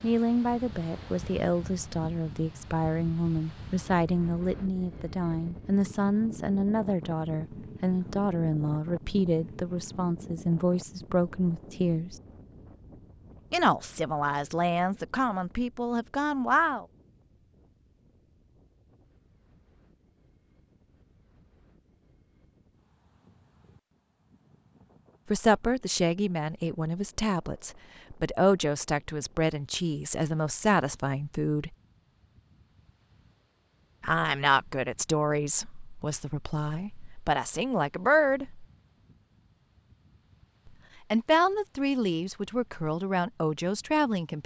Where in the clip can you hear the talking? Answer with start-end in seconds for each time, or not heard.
0.0-12.2, 13.5-16.9, 25.3-31.8, 34.0-38.6, 41.1-44.4.